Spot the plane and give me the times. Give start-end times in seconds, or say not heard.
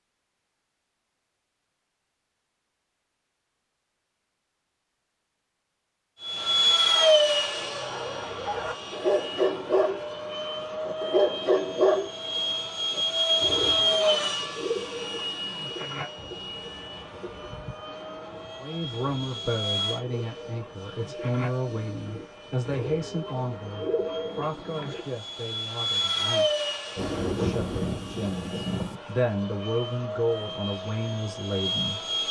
6.2-32.2.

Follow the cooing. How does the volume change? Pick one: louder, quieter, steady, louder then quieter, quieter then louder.
quieter then louder.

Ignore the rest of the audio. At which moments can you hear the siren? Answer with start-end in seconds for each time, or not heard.
not heard.